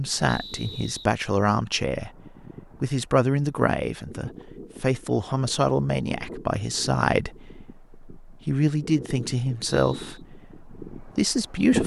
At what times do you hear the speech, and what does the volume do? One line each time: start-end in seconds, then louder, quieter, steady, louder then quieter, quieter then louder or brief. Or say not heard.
0.0-2.2 brief
2.8-11.8 steady.